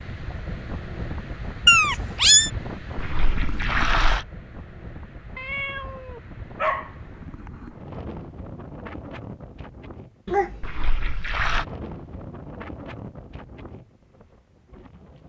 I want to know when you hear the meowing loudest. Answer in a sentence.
The loudest moment of the meowing is at 2 seconds.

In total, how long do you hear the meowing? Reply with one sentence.
The meowing can be heard for 3 seconds in total.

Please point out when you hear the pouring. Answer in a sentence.
You can hear the pouring from 3.0 to 4.2 s and from 10.6 to 11.7 s.